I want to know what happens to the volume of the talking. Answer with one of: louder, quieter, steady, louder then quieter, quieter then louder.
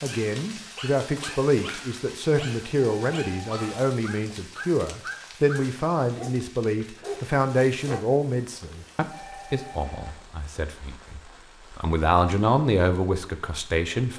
quieter then louder.